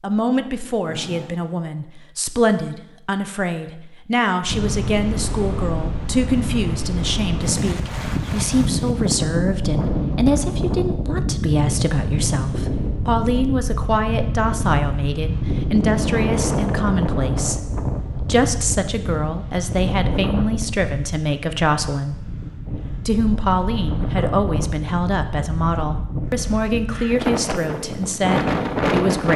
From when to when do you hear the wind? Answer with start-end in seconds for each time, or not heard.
4.5-29.3.